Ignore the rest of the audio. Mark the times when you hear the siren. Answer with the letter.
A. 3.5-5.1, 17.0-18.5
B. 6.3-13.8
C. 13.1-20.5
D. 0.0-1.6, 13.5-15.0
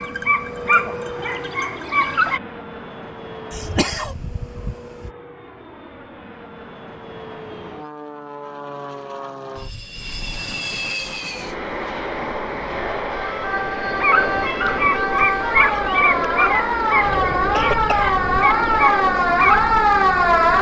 C.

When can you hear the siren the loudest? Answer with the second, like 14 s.
20 s.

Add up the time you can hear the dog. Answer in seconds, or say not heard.
8 s.